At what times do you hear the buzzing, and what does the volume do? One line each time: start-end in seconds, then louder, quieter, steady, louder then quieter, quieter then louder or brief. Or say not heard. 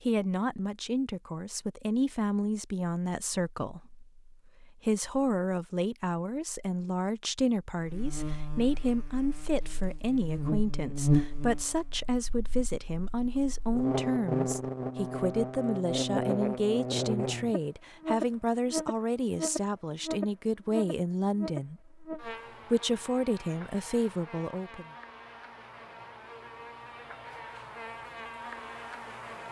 7.8-29.4 quieter.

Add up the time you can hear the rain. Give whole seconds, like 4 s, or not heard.
not heard.